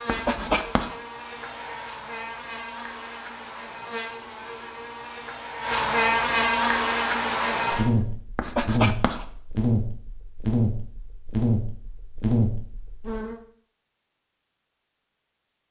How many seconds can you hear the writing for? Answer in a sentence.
You can hear the writing for 2 seconds altogether.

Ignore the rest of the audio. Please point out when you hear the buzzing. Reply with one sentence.
You can hear the buzzing from 0.0 to 13.4 s.